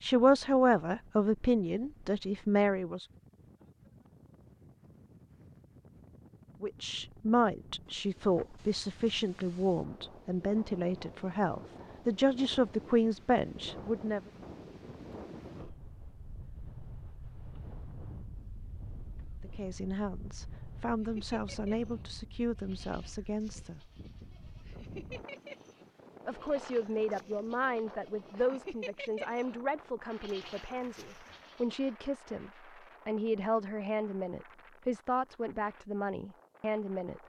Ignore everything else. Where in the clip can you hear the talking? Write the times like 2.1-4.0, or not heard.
0.0-3.0, 6.6-14.2, 19.4-23.9, 26.2-37.2.